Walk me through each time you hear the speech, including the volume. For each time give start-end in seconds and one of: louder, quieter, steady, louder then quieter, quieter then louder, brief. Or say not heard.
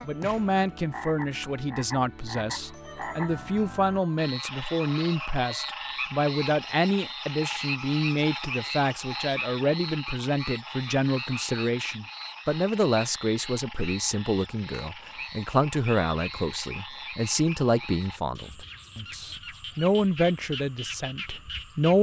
0.0-21.9 steady.